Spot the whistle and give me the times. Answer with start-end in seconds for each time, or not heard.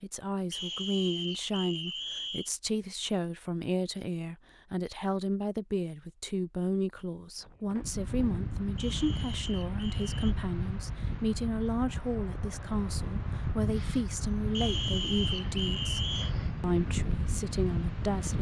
0.5-2.5, 8.8-10.3, 14.5-16.4.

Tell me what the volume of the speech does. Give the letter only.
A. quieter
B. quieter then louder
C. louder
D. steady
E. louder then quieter
D.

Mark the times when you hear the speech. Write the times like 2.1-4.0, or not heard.
0.0-18.3.